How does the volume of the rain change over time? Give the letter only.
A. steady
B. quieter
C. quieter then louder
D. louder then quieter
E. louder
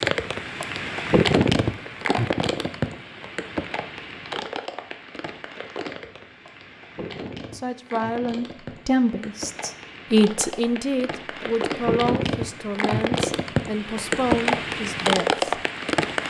C.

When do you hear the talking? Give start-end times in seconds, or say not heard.
7.5-15.4.